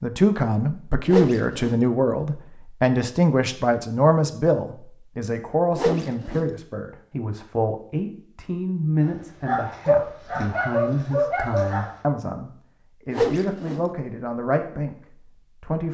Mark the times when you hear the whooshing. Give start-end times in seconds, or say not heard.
1.1-1.8, 5.8-6.5, 13.1-13.8.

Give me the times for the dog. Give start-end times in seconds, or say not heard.
9.0-12.0.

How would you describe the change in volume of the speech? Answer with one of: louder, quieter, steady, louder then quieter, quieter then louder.
quieter.